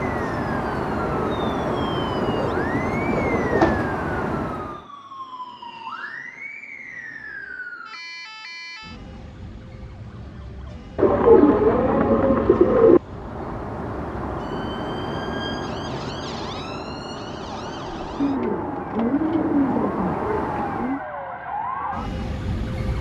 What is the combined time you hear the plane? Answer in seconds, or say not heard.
13 s.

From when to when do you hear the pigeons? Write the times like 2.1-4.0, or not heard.
1.2-3.9, 10.9-13.0, 18.1-21.0.